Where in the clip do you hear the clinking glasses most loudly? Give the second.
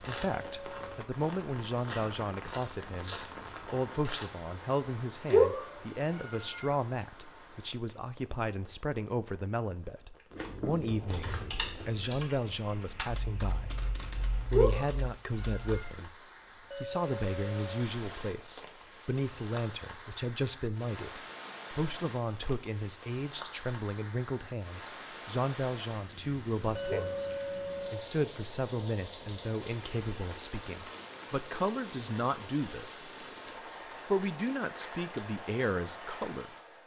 27 s.